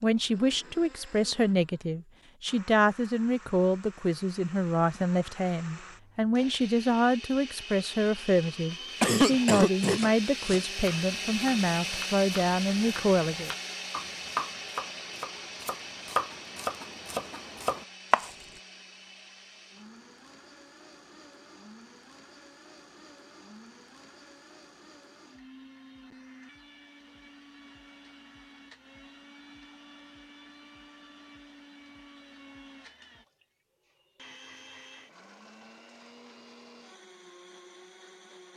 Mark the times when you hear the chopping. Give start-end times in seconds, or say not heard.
9.2-18.4.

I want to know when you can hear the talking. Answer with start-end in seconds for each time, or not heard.
0.0-13.5.